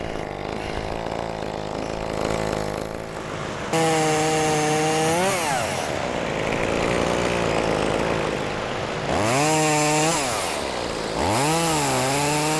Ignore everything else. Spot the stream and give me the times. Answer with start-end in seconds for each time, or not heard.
2.9-12.5.